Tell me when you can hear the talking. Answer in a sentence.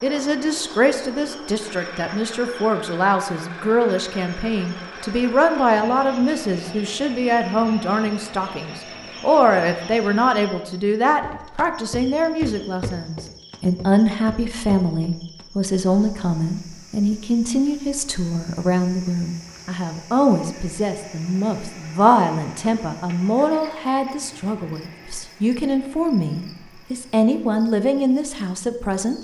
The talking can be heard from 0.0 to 29.1 s.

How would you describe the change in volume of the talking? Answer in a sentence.
The volume of the talking stays about the same.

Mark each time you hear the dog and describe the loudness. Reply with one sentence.
You can't hear the dog here.